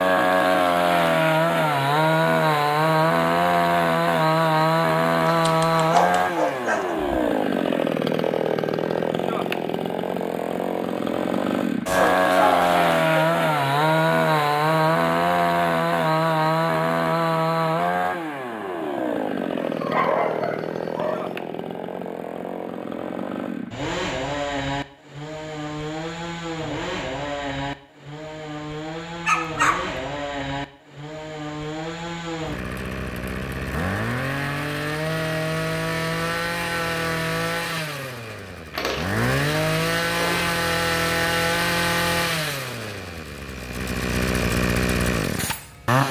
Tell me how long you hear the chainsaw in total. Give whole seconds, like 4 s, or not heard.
46 s.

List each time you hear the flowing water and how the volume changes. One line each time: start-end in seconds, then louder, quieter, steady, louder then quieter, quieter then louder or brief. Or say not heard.
not heard.